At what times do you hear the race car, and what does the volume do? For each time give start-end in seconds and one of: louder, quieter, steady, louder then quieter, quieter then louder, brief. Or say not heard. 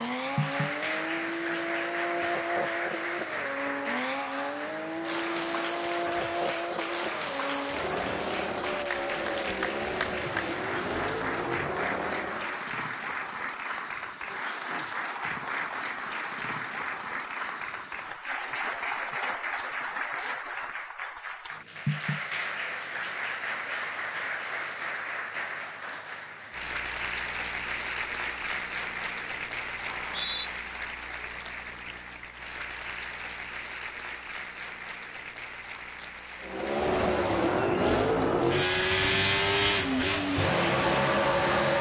0.0-12.7 steady
36.4-41.7 steady.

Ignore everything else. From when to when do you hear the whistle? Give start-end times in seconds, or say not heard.
29.9-30.5.